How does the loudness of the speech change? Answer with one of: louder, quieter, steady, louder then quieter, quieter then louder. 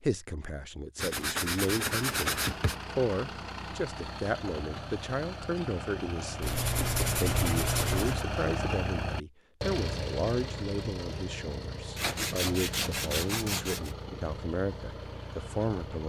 steady.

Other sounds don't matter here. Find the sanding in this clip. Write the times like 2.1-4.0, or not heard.
0.9-2.8, 6.4-8.2, 11.9-13.9.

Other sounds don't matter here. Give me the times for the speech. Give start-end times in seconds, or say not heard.
0.0-16.0.